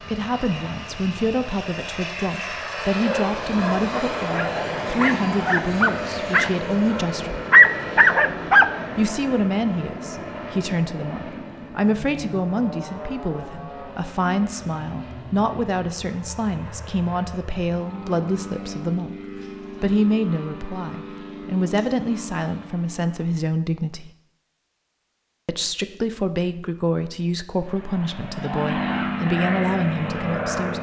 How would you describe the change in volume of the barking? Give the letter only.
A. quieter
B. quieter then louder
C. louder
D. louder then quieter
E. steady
C.